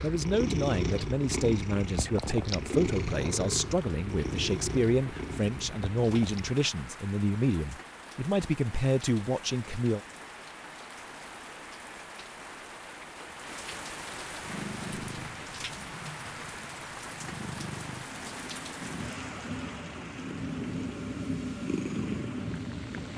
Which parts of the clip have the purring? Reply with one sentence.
The purring can be heard from 0.0 to 6.5 s and from 14.4 to 23.1 s.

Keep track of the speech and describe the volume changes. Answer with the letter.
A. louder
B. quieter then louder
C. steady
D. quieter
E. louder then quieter
C.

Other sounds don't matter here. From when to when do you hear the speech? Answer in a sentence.
You can hear the speech from 0.0 to 10.0 s.